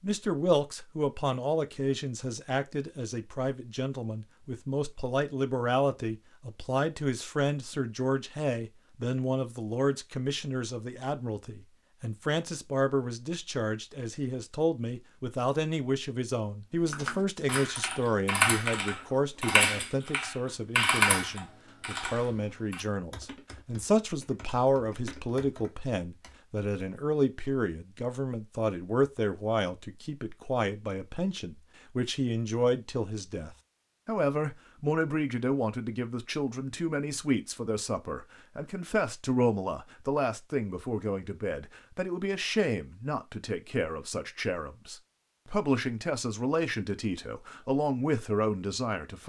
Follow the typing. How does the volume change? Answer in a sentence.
The volume of the typing goes down.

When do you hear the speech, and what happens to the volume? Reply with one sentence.
You can hear the speech from 0.0 to 49.2 s, at a steady volume.